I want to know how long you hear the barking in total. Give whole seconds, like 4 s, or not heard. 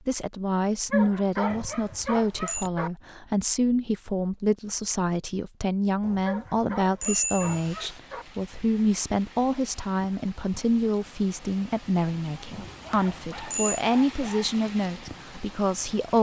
6 s.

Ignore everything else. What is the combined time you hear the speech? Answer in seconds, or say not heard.
16 s.